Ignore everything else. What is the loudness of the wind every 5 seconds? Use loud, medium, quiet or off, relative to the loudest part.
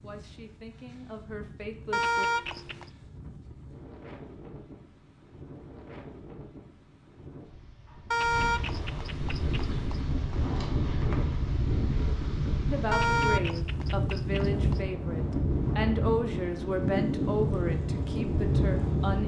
quiet, medium, loud, loud.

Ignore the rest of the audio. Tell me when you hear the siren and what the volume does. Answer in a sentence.
The siren can't be heard in this clip.